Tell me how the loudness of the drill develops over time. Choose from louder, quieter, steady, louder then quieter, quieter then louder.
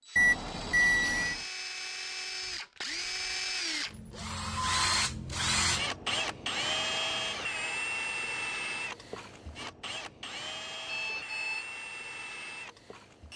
louder then quieter.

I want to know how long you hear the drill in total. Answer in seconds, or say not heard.
13 s.